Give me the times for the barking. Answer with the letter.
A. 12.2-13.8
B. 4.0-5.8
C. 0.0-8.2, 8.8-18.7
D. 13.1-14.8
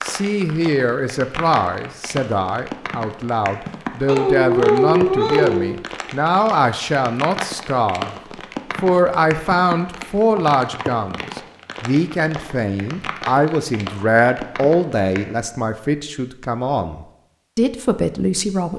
B.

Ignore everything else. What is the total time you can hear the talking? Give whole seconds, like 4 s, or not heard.
18 s.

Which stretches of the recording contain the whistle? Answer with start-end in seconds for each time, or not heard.
not heard.